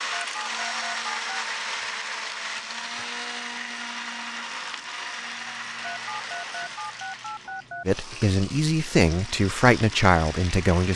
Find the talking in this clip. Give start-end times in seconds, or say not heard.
7.8-10.9.